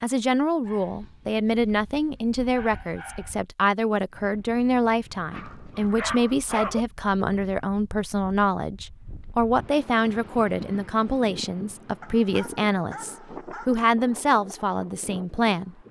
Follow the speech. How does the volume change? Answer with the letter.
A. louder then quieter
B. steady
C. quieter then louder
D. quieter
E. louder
B.